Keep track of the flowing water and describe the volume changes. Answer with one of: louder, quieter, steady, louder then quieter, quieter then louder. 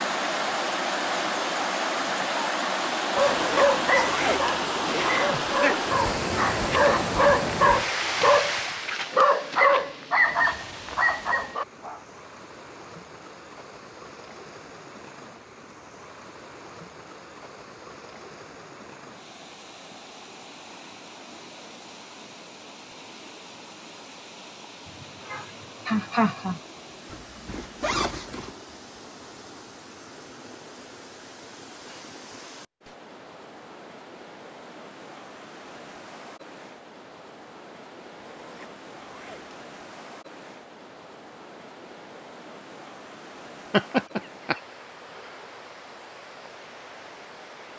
quieter.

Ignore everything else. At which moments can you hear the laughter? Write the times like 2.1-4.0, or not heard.
5.3-5.8, 24.9-26.6, 43.7-44.6.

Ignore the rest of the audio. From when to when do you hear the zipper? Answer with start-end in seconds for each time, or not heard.
3.1-5.4, 27.1-28.6, 38.4-39.6.